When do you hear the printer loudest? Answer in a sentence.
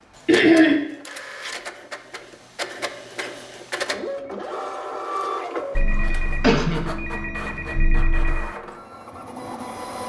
The loudest moment of the printer is at 5 seconds.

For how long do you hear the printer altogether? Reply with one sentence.
The printer can be heard for 10 seconds in total.